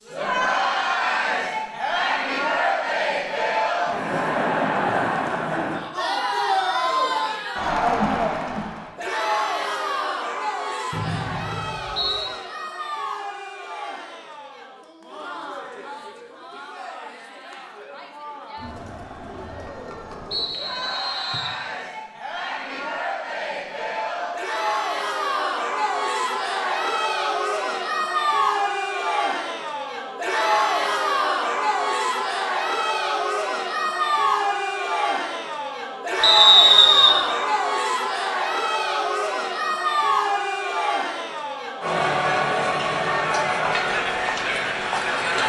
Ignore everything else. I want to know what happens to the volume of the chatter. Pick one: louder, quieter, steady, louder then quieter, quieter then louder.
quieter then louder.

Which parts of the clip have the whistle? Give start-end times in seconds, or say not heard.
10.9-12.3, 20.3-21.6, 36.2-37.1.